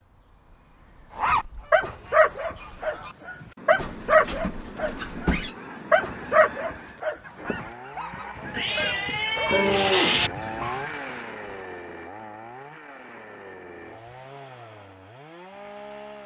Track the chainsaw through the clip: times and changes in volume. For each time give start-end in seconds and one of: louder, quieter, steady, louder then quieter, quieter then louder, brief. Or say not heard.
7.3-16.2 louder then quieter.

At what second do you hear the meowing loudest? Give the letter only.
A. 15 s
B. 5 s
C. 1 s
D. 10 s
D.